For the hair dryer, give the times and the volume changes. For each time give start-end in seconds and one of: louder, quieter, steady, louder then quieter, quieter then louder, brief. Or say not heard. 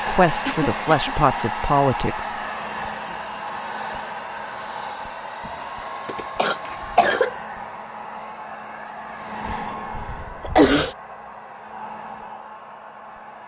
0.0-13.4 quieter.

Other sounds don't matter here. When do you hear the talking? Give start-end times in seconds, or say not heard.
0.1-2.3.